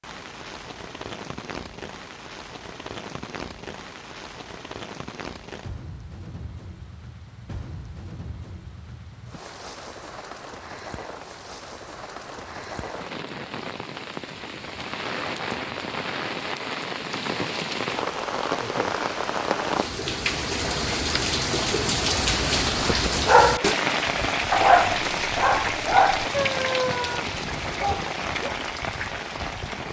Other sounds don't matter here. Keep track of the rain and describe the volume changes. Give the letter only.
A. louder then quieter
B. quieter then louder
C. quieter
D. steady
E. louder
E.